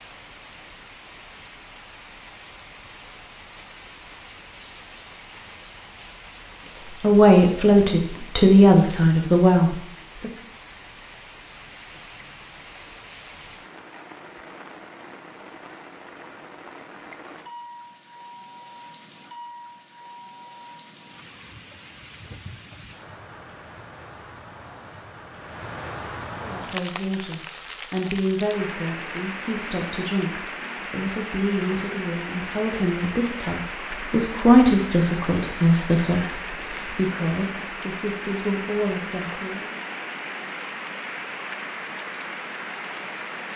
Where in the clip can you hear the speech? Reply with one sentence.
The speech can be heard from 7.0 to 10.3 s and from 26.4 to 39.8 s.